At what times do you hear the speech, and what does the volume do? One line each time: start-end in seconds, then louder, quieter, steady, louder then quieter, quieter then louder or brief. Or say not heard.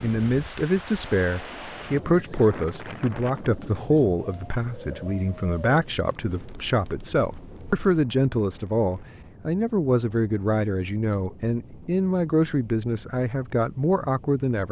0.0-14.6 steady.